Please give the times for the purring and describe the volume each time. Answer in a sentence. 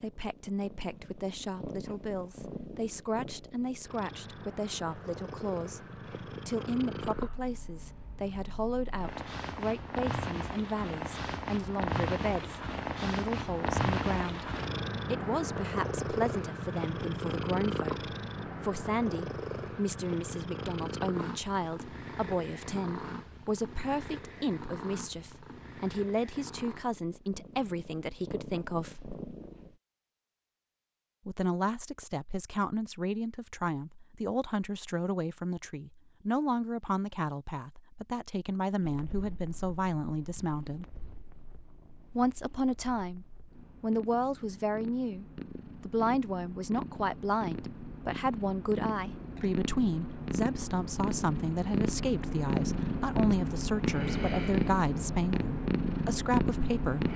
The purring can be heard from 0.0 to 29.8 s, getting louder then quieter; and from 38.8 to 57.1 s, getting louder.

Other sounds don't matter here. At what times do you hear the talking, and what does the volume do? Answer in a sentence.
The talking can be heard from 0.0 to 14.4 s, at a steady volume; from 15.1 to 29.1 s, at a steady volume; from 31.2 to 40.9 s, at a steady volume; and from 42.1 to 57.1 s, at a steady volume.